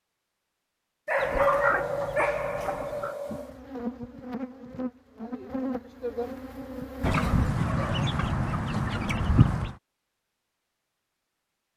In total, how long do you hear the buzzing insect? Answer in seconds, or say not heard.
4 s.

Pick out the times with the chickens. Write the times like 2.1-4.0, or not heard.
1.1-3.1, 7.0-9.8.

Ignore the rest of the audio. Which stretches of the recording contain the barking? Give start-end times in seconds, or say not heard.
1.1-3.5, 7.0-8.1.